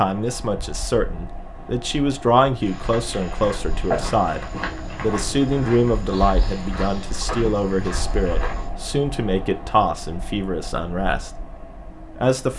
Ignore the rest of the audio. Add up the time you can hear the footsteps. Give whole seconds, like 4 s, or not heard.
6 s.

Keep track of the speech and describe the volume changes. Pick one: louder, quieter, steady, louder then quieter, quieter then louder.
steady.